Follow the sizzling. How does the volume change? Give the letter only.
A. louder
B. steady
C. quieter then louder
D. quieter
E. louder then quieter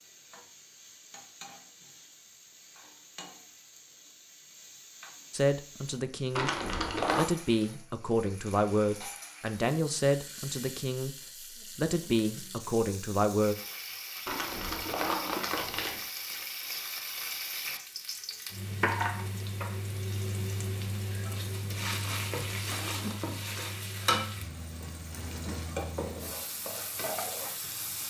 A.